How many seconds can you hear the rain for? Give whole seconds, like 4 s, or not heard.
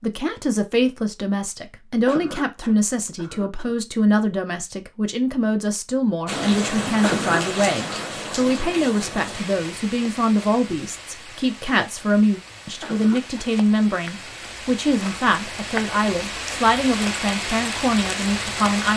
13 s.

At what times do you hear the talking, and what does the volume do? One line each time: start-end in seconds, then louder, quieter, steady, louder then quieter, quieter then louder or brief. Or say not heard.
0.0-18.9 steady.